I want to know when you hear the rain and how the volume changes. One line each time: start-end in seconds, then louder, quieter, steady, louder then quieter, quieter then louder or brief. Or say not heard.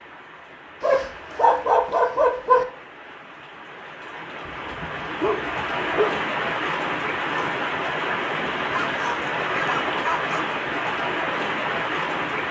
0.0-12.4 louder.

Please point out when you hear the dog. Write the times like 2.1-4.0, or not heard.
0.8-2.6, 4.5-6.2, 8.4-10.4.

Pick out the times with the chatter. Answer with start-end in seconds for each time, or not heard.
not heard.